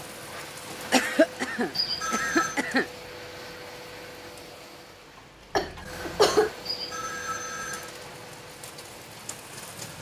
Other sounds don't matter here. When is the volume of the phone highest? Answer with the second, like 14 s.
2 s.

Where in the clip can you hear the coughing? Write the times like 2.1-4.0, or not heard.
0.9-2.9, 5.5-6.5.